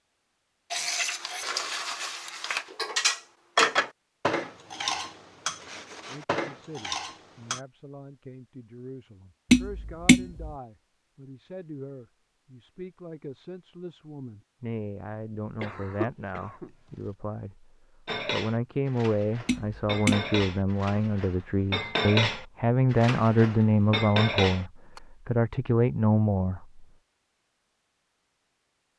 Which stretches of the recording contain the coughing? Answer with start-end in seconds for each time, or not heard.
15.6-17.1.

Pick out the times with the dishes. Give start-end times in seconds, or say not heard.
0.7-7.6, 18.1-25.0.